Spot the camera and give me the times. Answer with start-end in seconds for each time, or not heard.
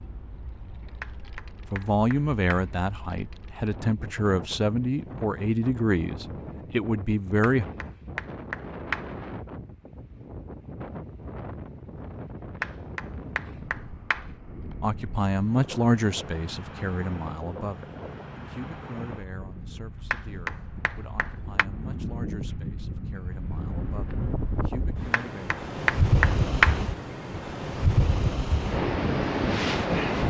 not heard.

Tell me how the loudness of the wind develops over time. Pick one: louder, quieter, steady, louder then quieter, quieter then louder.
louder.